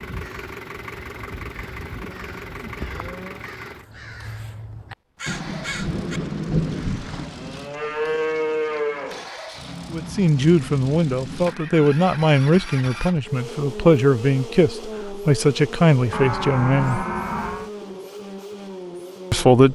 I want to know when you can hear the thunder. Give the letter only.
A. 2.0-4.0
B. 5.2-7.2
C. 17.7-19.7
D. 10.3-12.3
B.